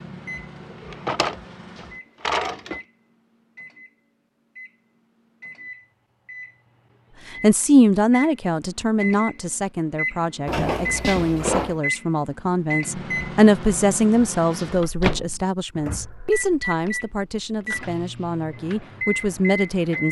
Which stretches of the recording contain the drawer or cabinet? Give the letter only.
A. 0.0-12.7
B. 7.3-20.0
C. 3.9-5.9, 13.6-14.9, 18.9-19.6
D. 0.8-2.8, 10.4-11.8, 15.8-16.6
D.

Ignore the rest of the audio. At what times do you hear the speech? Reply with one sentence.
The speech can be heard from 7.3 to 20.0 s.